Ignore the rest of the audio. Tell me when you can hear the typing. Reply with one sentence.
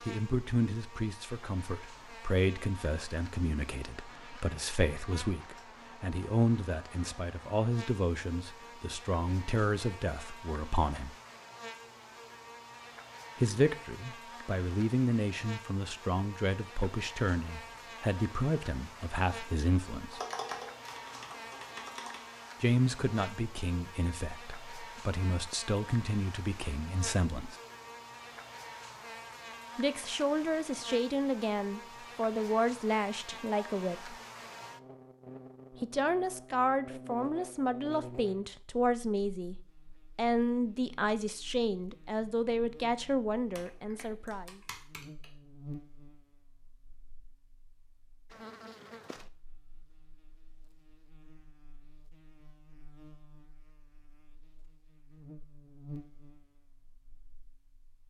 The typing can be heard from 20.1 to 22.2 s and from 43.5 to 45.2 s.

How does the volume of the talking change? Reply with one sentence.
The volume of the talking stays about the same.